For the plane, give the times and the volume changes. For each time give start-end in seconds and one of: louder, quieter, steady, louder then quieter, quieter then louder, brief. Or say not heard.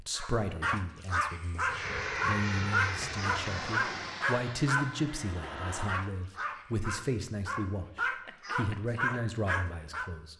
1.6-6.0 quieter.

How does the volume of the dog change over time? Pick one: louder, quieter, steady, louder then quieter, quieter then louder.
quieter then louder.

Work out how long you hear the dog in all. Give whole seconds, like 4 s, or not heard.
10 s.